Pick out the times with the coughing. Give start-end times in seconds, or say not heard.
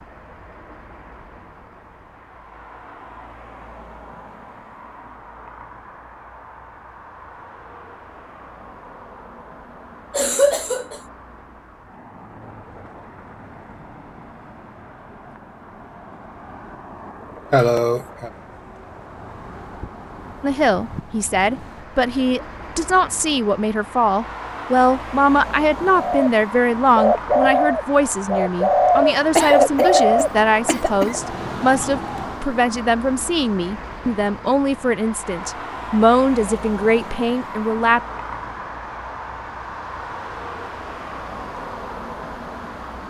10.1-11.0, 17.5-18.3, 29.4-31.2.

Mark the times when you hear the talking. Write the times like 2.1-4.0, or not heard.
20.4-38.0.